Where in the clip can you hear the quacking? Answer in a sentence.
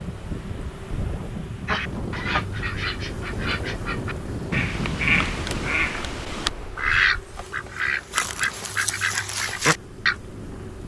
You can hear the quacking from 1.6 to 10.2 s.